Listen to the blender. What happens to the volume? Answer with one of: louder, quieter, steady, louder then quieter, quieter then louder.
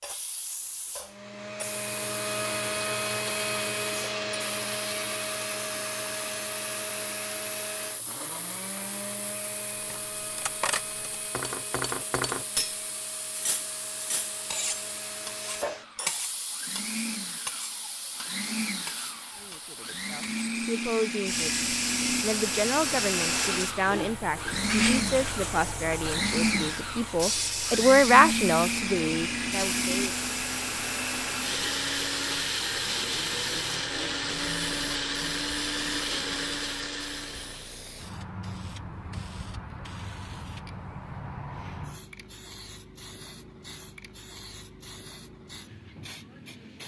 quieter then louder.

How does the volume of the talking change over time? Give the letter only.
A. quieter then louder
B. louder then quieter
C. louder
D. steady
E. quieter
C.